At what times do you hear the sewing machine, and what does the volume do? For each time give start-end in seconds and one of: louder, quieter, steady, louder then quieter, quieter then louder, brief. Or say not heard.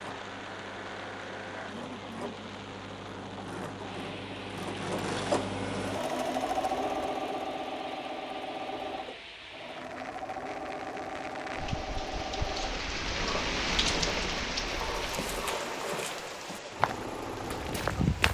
0.0-18.0 louder then quieter.